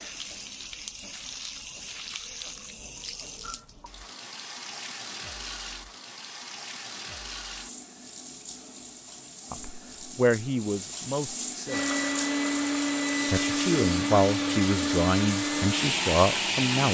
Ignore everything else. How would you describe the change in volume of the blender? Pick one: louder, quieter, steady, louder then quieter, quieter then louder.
steady.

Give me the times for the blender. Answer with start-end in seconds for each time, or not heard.
11.7-16.8.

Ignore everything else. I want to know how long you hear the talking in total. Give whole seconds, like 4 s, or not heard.
6 s.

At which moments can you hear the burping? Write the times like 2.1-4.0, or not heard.
not heard.